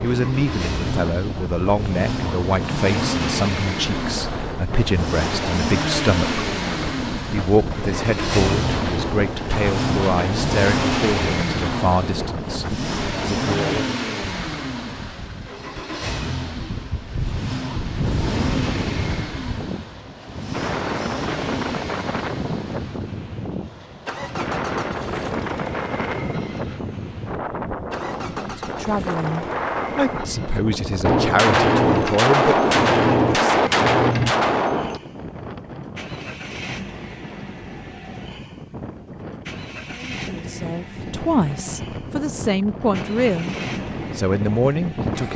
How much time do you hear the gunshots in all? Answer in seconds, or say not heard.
8 s.